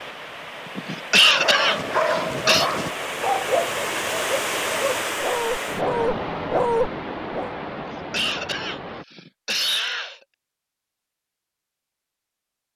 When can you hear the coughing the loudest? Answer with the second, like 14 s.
1 s.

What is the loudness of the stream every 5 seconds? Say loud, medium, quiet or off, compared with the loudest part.
loud, loud, off.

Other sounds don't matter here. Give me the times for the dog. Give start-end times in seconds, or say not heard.
1.2-7.5.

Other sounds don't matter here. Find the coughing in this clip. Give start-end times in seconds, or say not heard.
0.8-2.7, 7.8-10.2.